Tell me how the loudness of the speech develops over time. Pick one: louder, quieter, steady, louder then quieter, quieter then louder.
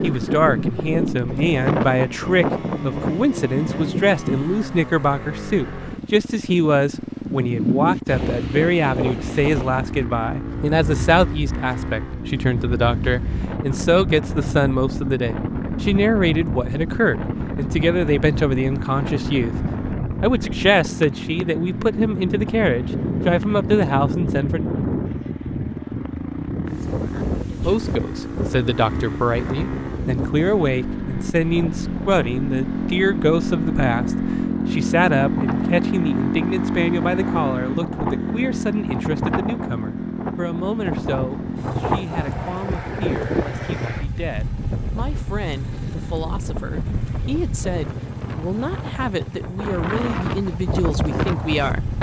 quieter.